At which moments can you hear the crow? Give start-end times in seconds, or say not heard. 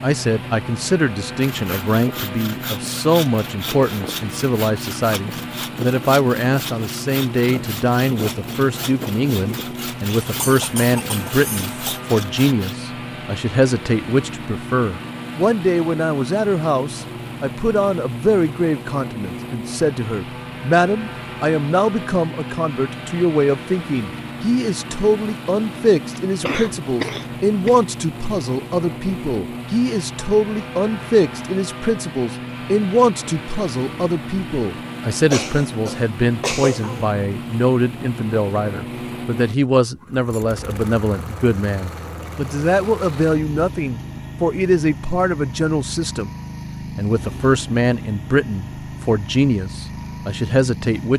not heard.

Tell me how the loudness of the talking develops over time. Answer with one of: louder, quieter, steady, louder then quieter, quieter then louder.
steady.